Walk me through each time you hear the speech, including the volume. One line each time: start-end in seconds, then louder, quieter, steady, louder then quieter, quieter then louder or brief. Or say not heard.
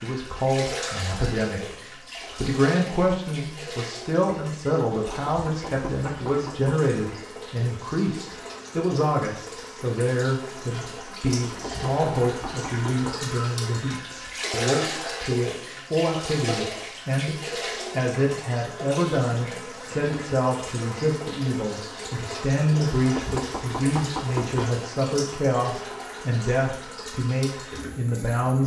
0.0-1.8 brief
2.4-17.4 steady
17.9-28.6 steady.